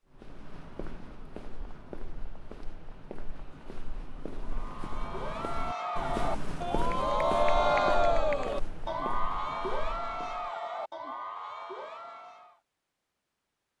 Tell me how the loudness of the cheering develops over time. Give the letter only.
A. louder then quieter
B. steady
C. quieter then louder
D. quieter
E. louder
A.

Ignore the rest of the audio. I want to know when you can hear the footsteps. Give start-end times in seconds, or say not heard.
0.1-10.5.